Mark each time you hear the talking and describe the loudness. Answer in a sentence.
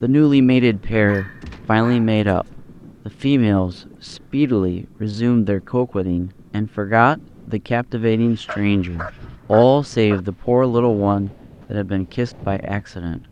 You can hear the talking from 0.0 to 13.2 s, at a steady volume.